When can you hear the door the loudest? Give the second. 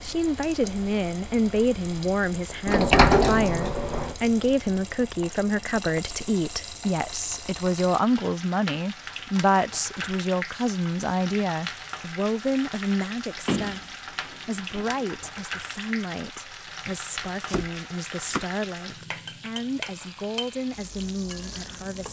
3 s.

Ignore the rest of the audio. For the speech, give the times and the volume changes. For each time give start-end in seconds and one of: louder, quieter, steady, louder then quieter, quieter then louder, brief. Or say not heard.
0.0-22.0 quieter.